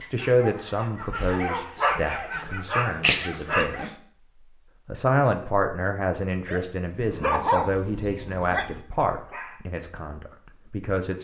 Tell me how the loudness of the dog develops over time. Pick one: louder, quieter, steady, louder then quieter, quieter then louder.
louder then quieter.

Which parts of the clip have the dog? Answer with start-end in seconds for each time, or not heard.
0.0-3.9, 6.5-9.6.